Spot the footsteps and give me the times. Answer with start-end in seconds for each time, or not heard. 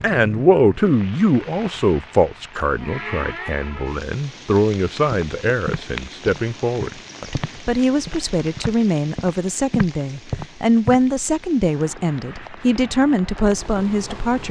5.1-11.0.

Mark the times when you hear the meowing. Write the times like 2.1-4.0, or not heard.
not heard.